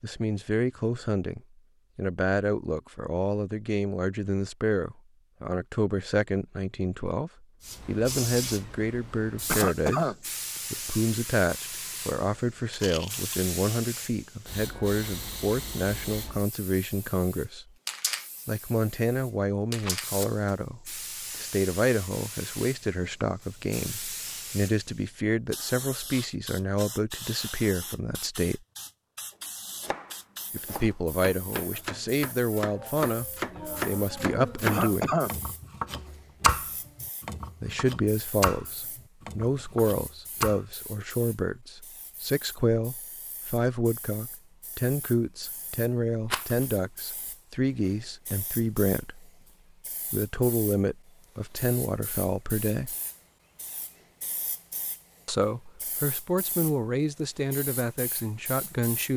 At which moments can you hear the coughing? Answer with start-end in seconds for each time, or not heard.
9.4-10.2, 34.6-35.3.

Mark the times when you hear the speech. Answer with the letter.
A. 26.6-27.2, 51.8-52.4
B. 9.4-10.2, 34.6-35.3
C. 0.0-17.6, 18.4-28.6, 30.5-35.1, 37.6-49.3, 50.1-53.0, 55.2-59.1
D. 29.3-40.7
C.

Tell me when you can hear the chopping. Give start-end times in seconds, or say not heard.
29.3-40.7.